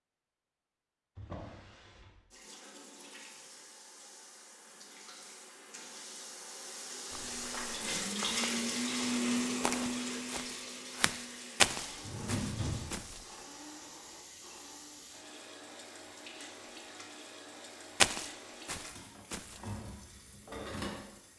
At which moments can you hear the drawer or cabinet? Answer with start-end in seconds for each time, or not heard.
1.1-2.1, 11.7-13.2.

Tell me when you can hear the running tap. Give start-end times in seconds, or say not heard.
2.3-21.3.